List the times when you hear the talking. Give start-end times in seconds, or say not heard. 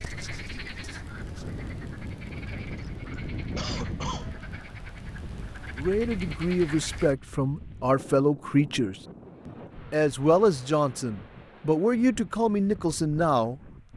5.8-13.9.